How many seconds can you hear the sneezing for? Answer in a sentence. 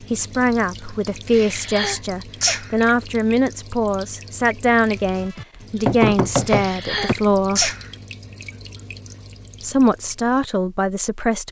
The sneezing can be heard for 3 seconds in total.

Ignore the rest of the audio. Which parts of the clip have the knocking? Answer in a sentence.
The knocking can be heard from 5.5 to 7.2 s.